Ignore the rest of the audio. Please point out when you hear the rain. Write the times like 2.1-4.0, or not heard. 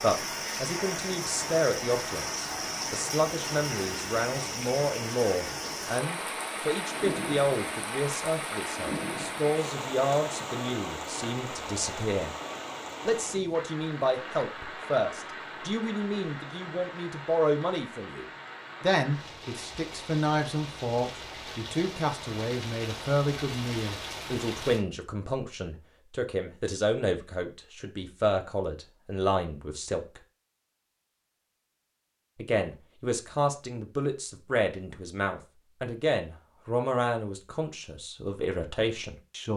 0.0-24.9.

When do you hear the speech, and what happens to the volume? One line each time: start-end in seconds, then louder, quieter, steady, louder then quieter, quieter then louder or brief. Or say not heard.
0.0-12.3 steady
13.1-30.2 steady
32.4-39.5 steady.